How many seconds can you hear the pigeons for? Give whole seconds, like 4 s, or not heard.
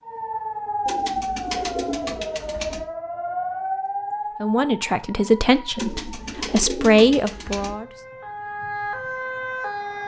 4 s.